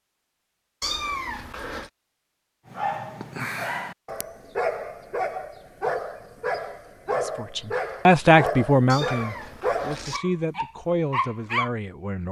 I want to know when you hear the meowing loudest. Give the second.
1 s.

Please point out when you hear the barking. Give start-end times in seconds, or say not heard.
2.6-11.7.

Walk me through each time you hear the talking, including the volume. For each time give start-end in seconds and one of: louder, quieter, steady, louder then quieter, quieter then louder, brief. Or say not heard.
7.2-12.2 quieter then louder.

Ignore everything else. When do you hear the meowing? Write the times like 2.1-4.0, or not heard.
0.8-1.9, 8.8-10.2.